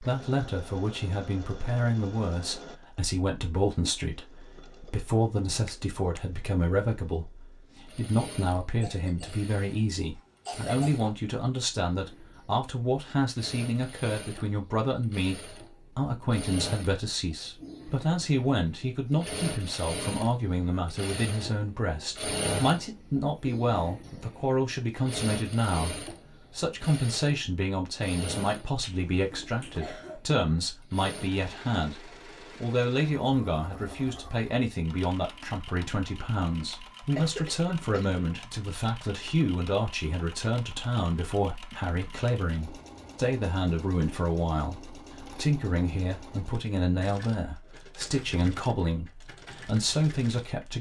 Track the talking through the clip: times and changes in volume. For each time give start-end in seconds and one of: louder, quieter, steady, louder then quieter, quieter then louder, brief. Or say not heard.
0.0-50.7 steady.